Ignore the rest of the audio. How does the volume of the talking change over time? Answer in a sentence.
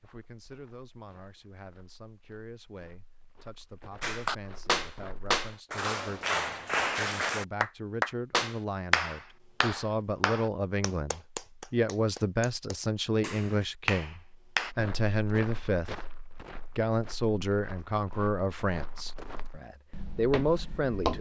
The loudness of the talking goes up.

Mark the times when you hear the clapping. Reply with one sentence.
The clapping can be heard from 4.0 to 14.7 s.